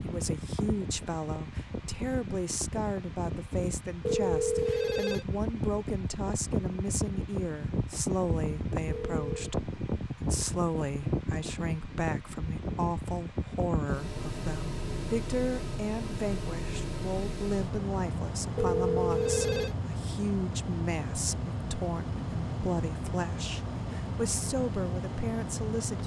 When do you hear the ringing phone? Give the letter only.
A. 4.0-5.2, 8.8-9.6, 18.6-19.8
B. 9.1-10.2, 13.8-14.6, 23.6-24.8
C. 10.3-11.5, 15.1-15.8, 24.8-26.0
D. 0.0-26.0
A.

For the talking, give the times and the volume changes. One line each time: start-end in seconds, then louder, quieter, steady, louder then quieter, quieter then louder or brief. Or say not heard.
0.0-26.0 steady.